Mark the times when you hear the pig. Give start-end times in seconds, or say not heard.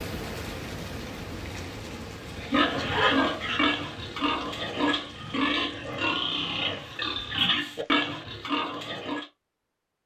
2.4-9.3.